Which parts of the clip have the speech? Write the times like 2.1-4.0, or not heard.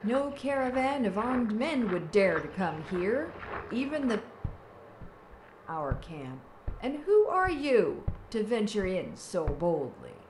0.0-4.2, 5.7-10.2.